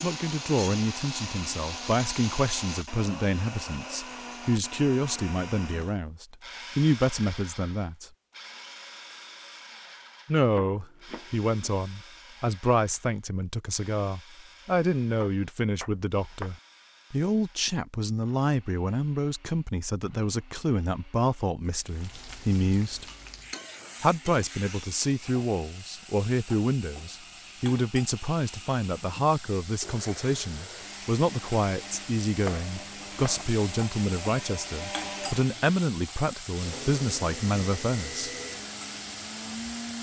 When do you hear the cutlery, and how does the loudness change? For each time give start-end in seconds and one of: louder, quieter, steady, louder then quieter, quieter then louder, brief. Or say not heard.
not heard.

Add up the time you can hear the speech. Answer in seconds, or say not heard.
35 s.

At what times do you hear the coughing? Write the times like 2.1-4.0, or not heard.
not heard.